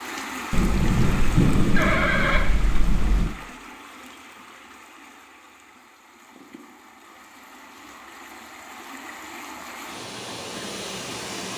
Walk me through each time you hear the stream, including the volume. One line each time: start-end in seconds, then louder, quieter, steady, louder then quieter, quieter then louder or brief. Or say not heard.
0.0-11.5 quieter then louder.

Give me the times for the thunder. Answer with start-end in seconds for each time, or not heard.
0.5-3.4.